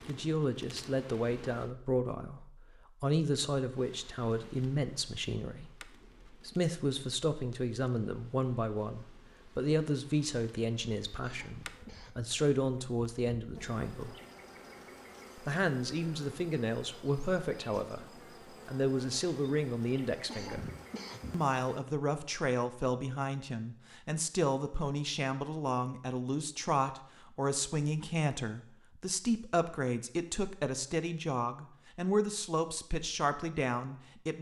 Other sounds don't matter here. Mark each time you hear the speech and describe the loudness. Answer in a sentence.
You can hear the speech from 0.1 to 14.2 s, at a steady volume; briefly from 15.3 to 18.1 s; briefly from 18.6 to 20.7 s; and from 21.3 to 34.3 s, at a steady volume.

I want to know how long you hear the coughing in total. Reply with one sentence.
You can hear the coughing for 2 seconds altogether.